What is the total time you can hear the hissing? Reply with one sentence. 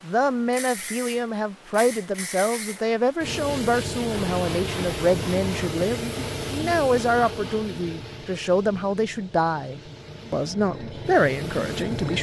You can hear the hissing for 12 seconds altogether.